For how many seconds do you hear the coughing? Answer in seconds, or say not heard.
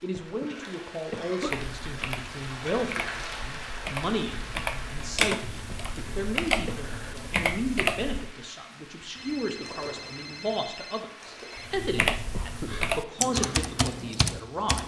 3 s.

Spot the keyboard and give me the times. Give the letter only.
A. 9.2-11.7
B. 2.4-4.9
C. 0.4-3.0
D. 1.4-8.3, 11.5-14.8
D.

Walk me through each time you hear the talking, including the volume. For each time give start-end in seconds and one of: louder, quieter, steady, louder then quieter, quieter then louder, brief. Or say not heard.
0.0-14.8 steady.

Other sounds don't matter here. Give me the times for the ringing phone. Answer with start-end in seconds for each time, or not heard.
9.2-11.7.